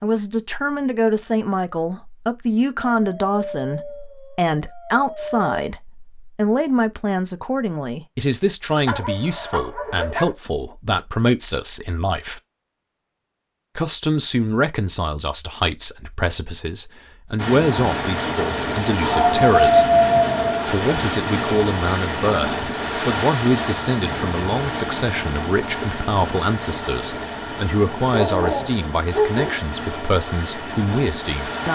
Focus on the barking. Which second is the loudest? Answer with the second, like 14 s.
20 s.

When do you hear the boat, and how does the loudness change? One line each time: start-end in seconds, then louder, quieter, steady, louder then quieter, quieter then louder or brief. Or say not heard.
17.4-31.6 quieter.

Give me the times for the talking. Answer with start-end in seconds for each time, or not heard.
0.0-12.4, 13.8-19.9, 20.6-31.6.